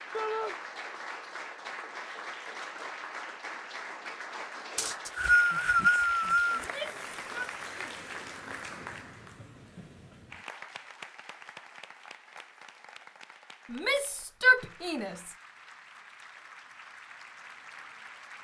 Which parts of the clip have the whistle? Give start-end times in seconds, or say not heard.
4.8-6.7.